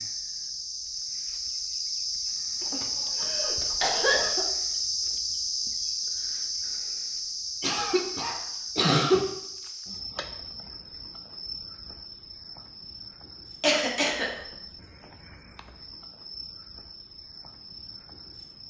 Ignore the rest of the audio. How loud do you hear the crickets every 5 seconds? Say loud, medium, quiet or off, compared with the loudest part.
loud, loud, quiet, quiet.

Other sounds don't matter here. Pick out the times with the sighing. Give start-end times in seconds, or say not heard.
not heard.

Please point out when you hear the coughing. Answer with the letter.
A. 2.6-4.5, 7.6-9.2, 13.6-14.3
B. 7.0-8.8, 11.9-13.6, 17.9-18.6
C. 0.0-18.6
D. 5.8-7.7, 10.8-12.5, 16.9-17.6
A.